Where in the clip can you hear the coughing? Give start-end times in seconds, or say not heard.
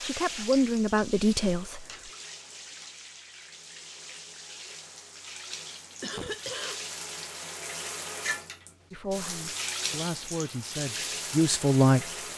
6.0-6.9.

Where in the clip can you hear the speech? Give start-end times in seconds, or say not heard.
0.0-1.9, 8.9-12.1.